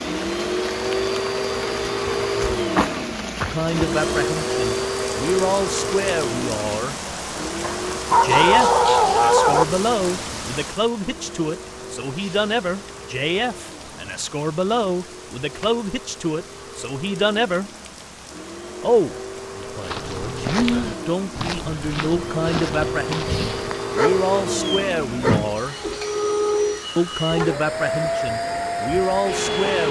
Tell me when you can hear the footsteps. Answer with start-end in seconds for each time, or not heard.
19.6-23.9.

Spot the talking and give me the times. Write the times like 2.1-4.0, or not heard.
3.5-7.0, 8.2-17.7, 18.8-25.8, 26.9-29.8.